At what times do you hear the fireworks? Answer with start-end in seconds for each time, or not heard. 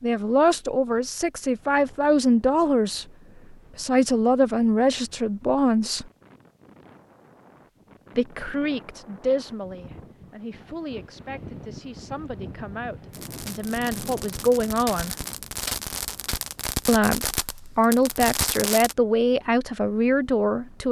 13.1-18.9.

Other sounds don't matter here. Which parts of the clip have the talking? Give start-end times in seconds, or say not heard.
0.0-6.0, 8.2-15.2, 16.9-20.8.